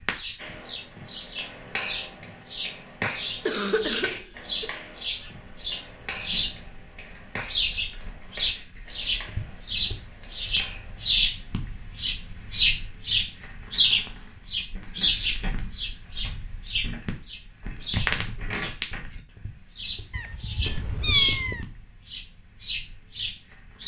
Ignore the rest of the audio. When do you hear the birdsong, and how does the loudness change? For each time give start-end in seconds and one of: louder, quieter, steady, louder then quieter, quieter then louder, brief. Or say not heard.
0.0-23.8 louder then quieter.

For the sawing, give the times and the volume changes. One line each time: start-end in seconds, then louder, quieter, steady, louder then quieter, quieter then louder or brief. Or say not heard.
not heard.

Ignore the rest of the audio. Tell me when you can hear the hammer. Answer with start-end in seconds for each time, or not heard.
0.3-11.2.